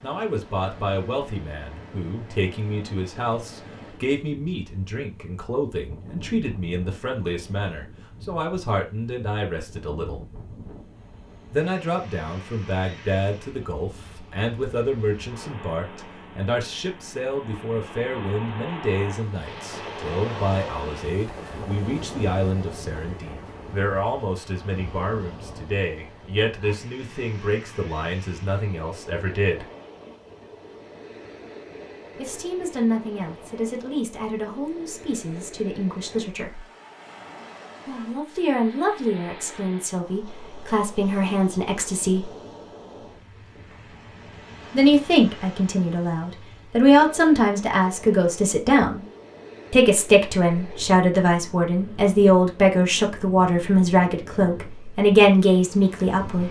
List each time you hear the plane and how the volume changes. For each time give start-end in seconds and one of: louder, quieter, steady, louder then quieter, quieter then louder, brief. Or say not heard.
not heard.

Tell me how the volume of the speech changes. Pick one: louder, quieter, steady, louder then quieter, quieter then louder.
louder.